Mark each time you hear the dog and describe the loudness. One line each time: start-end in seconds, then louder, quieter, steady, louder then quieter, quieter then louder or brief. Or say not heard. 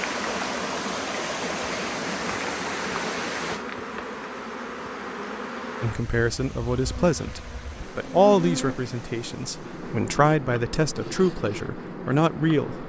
not heard.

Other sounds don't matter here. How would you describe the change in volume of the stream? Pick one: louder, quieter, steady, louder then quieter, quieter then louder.
quieter.